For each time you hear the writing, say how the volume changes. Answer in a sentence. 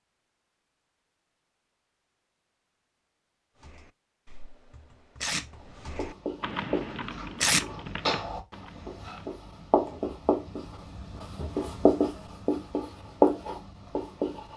The writing can be heard from 5.7 to 14.5 s, getting louder.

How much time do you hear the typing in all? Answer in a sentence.
You can hear the typing for 6 seconds altogether.